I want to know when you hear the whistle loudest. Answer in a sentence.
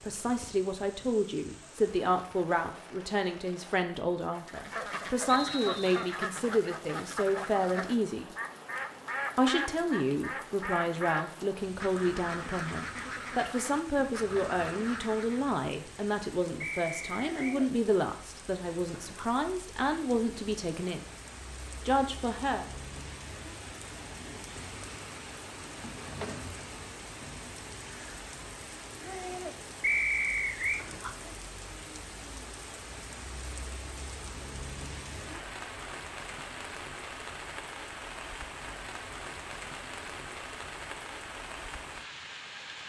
The loudest moment of the whistle is at 30 seconds.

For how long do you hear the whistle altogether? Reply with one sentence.
The whistle can be heard for 3 seconds in total.